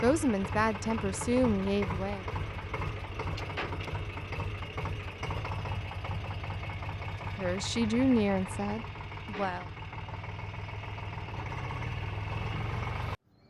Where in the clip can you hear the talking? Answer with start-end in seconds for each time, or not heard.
0.0-2.2, 7.2-9.7.